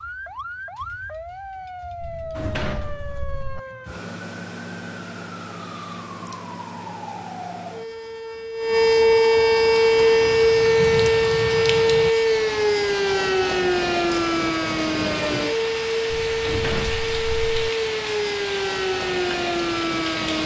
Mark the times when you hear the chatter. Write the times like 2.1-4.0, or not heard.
not heard.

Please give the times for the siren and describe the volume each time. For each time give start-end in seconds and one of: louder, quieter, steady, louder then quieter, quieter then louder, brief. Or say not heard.
0.0-20.4 louder then quieter.